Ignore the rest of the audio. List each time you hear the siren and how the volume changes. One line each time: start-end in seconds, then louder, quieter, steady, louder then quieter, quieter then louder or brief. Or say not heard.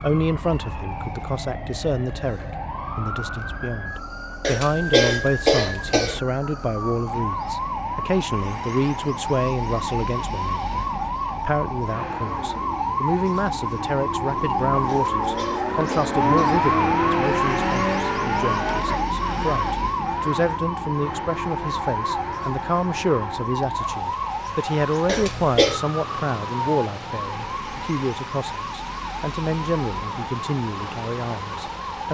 0.0-32.0 louder then quieter.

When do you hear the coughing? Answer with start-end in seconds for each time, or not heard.
4.4-6.2, 14.8-16.6, 25.1-25.8.